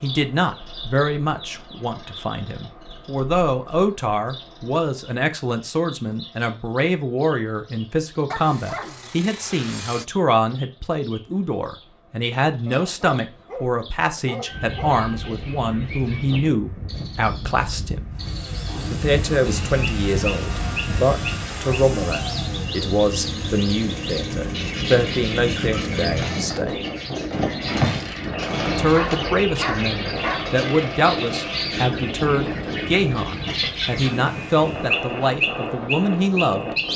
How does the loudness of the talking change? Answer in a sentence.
The loudness of the talking stays about the same.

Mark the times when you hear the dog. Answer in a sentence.
You can hear the dog from 8.3 to 10.1 s, from 12.7 to 15.3 s and from 28.8 to 30.6 s.